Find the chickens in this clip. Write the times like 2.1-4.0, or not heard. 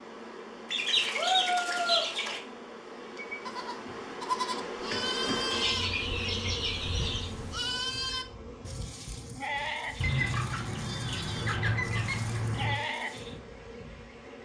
0.7-2.4, 5.5-7.3, 10.0-12.8.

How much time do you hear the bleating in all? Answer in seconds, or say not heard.
10 s.